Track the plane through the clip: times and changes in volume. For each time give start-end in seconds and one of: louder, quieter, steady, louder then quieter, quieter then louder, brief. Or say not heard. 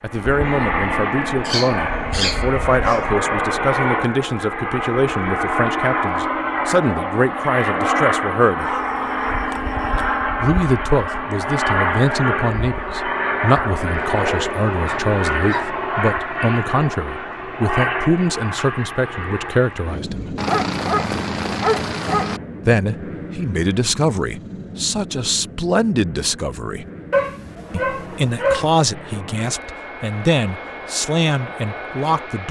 0.0-32.4 quieter.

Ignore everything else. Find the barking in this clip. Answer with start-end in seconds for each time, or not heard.
1.4-3.0, 8.6-10.2, 14.0-15.8, 20.4-22.4, 27.1-28.8.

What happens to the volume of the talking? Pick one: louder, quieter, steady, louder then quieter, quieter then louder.
steady.